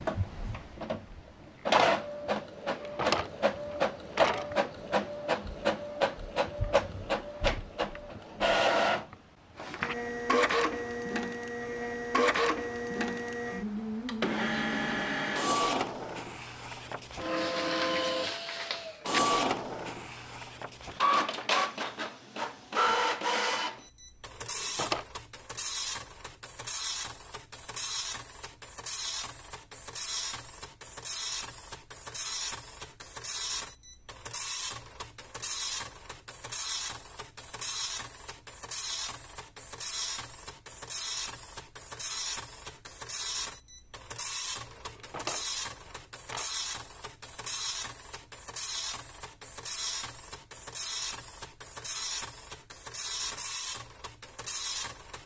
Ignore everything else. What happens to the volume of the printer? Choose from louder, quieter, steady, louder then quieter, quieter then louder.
quieter.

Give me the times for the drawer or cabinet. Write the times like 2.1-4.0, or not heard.
2.6-4.5, 24.4-25.1, 44.8-46.5.